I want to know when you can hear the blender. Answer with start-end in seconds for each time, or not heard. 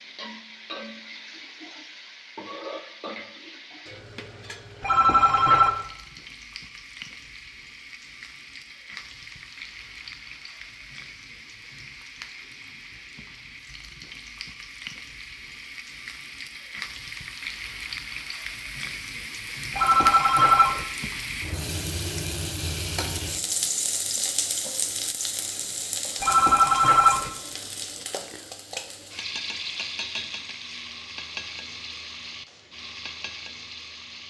not heard.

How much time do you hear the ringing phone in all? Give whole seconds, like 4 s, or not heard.
3 s.